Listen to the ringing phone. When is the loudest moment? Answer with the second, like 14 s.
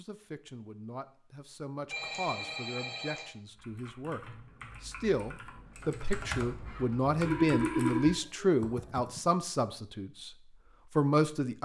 8 s.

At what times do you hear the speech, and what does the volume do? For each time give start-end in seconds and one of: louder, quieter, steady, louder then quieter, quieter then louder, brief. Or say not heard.
0.0-10.3 louder
10.9-11.6 brief.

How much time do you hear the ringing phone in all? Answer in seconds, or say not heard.
3 s.